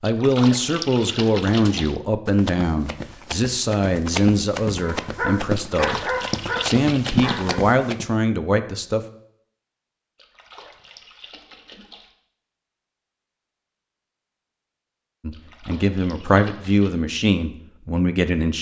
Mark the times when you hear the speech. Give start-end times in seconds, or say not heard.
0.0-6.0, 6.6-9.0, 15.2-18.5.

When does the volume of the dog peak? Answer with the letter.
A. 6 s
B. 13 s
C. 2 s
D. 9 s
A.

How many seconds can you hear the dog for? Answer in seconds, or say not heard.
3 s.